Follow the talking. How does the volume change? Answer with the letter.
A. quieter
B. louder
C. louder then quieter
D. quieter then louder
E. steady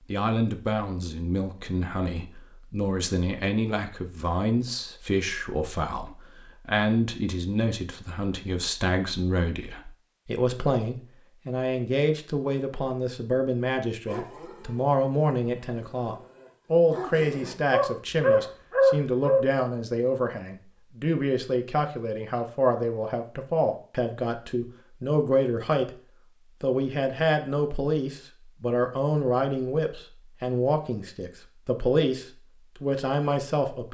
E.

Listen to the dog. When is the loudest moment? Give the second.
19 s.